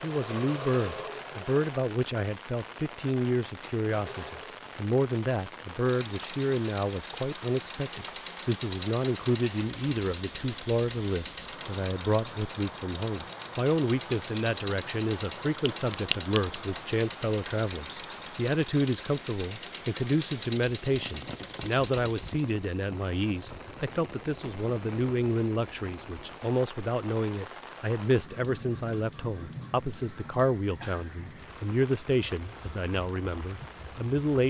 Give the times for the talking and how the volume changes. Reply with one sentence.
You can hear the talking from 0.0 to 34.4 s, at a steady volume.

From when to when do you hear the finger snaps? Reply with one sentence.
You can hear the finger snaps from 15.4 to 16.6 s.